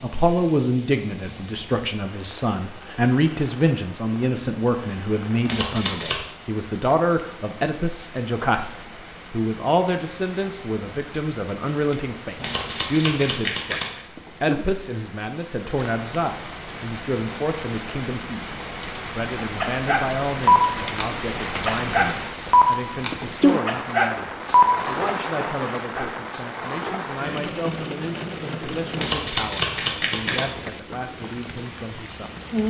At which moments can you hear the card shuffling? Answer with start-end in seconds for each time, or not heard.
5.5-6.2, 12.3-14.0, 28.9-30.5.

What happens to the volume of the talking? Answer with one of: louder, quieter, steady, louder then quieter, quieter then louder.
quieter.